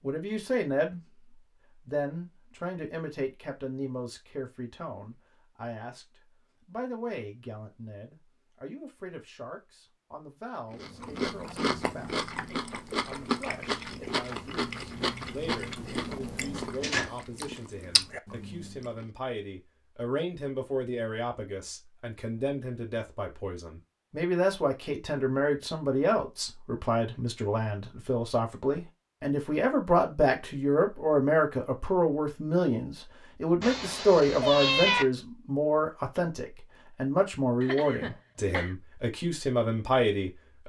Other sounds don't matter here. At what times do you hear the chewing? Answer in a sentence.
You can hear the chewing from 10.7 to 19.1 s.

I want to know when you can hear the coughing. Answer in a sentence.
The coughing can be heard from 37.6 to 38.8 s.